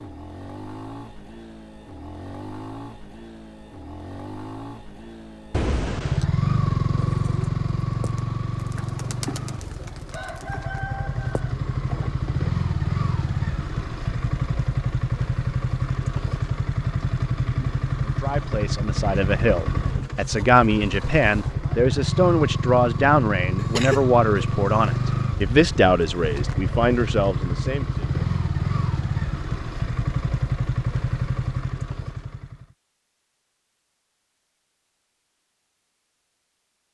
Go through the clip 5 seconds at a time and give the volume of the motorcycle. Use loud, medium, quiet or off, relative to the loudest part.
quiet, loud, loud, loud, loud, loud, loud, off.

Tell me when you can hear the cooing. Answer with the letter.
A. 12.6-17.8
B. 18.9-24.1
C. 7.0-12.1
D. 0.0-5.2
C.